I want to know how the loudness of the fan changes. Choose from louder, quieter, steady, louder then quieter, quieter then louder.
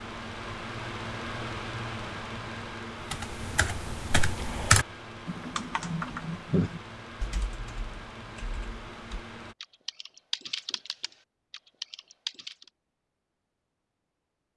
quieter.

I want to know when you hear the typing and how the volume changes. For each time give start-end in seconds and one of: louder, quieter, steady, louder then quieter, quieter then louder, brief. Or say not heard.
3.1-12.7 quieter then louder.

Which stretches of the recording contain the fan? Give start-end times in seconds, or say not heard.
0.0-9.6.